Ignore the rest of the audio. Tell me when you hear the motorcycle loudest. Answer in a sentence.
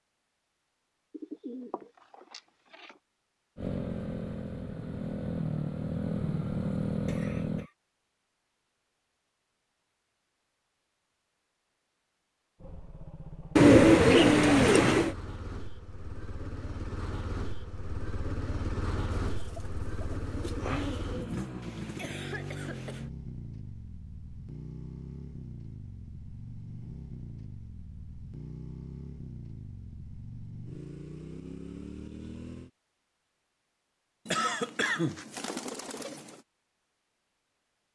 The loudest moment of the motorcycle is at 7 seconds.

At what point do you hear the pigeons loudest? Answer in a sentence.
The volume of the pigeons peaks at 14 seconds.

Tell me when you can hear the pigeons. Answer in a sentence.
You can hear the pigeons from 1.1 to 3.0 s, from 13.6 to 15.2 s, from 19.2 to 21.4 s and from 34.2 to 36.4 s.